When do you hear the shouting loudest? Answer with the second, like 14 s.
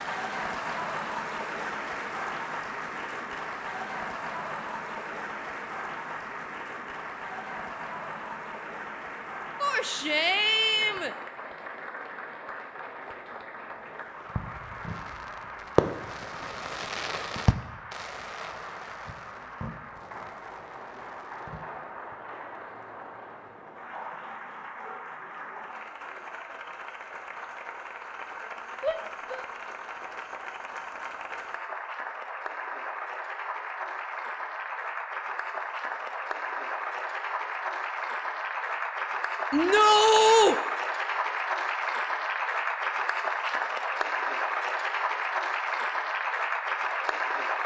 40 s.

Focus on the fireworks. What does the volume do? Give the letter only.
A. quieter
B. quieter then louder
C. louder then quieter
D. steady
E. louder
C.